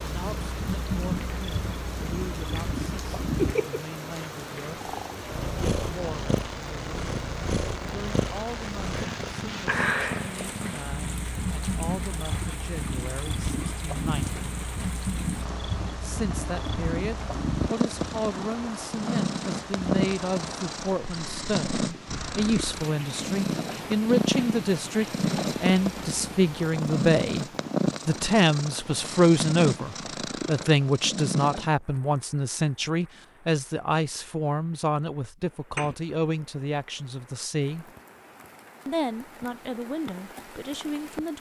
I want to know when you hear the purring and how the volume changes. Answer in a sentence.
You can hear the purring from 0.0 to 31.7 s, at a steady volume.